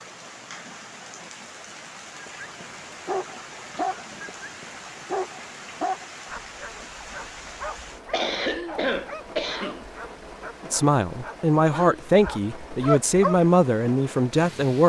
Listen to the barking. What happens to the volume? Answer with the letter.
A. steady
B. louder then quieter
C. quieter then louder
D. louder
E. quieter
C.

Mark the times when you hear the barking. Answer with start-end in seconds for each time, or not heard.
2.1-13.5.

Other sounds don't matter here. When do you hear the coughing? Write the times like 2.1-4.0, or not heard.
8.1-9.8.